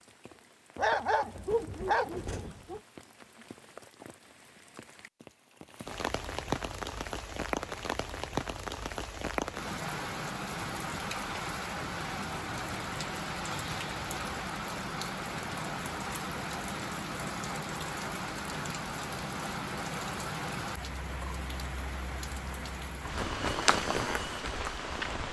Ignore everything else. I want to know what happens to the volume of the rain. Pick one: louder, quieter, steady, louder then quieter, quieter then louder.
louder.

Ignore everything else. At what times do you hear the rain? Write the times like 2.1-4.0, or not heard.
0.0-25.2.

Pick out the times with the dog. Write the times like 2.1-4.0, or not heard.
0.8-2.8.